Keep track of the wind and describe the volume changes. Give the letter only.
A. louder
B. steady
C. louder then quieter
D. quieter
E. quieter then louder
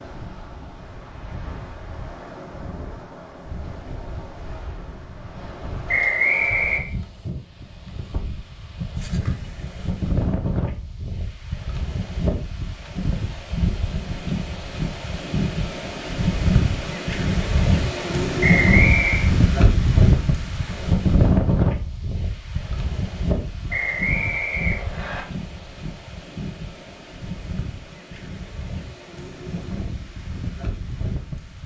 C.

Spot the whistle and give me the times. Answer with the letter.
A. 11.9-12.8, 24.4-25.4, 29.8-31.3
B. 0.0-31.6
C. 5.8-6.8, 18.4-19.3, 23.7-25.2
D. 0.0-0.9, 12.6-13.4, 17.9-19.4
C.